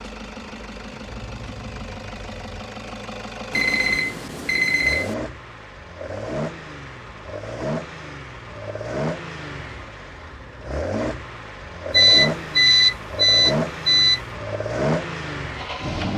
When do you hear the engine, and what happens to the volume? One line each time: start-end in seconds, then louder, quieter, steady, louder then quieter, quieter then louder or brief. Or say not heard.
0.0-16.1 louder.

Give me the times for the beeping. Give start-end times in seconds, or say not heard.
3.5-5.2, 11.9-14.2.